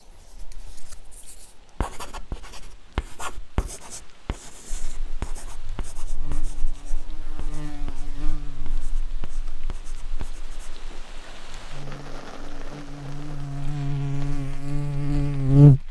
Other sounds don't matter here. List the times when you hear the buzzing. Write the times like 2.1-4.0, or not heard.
4.7-15.8.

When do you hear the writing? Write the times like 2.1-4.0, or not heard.
0.0-10.8.